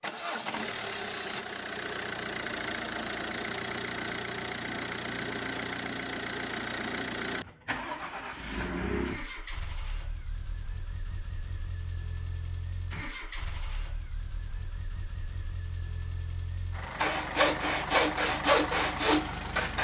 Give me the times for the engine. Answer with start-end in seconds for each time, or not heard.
0.0-19.7.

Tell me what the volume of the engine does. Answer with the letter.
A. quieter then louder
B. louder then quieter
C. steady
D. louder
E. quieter
A.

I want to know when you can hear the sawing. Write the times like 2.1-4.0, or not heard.
17.0-19.7.